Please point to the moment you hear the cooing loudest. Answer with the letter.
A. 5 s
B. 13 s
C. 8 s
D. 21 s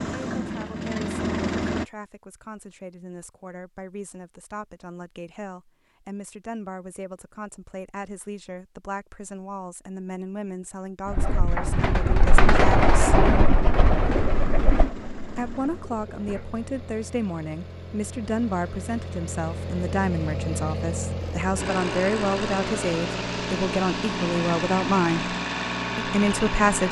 B.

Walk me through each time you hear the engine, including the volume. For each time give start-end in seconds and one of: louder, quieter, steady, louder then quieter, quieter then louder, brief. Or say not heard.
0.0-1.9 brief
14.1-26.8 louder.